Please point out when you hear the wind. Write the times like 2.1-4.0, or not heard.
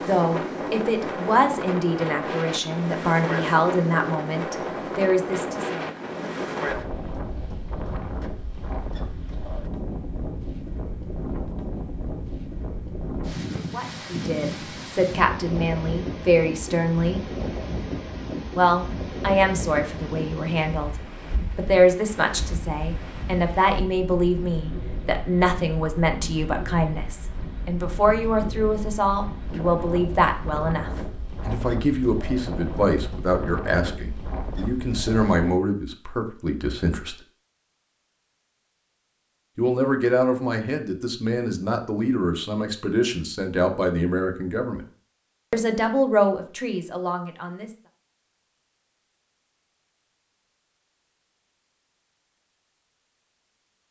0.0-35.5.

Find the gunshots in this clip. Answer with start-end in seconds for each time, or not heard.
not heard.